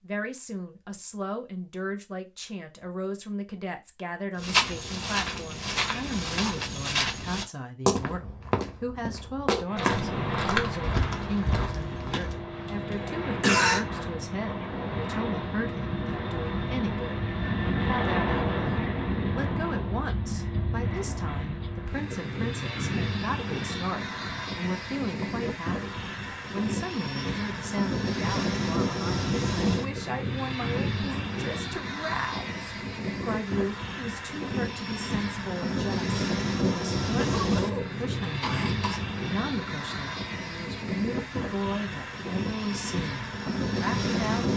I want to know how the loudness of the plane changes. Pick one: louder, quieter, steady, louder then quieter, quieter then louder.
steady.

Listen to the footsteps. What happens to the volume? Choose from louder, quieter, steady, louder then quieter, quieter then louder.
steady.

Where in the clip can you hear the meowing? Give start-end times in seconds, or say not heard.
not heard.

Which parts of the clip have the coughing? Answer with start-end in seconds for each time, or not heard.
12.7-13.8, 37.1-39.0.